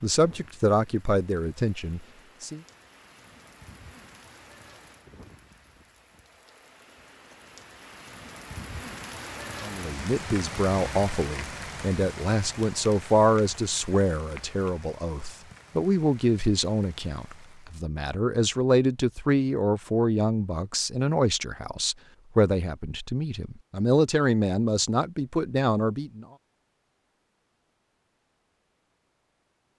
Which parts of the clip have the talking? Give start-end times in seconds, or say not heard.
0.0-2.6, 9.6-26.2.